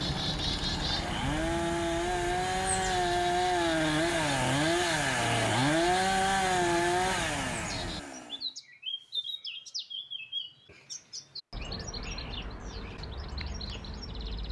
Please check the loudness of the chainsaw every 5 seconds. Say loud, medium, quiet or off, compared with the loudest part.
loud, loud, off.